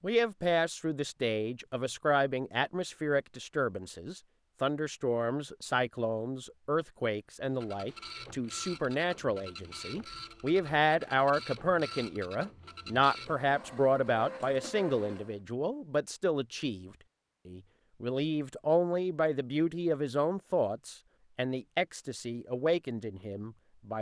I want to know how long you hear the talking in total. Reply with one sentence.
You can hear the talking for 24 seconds altogether.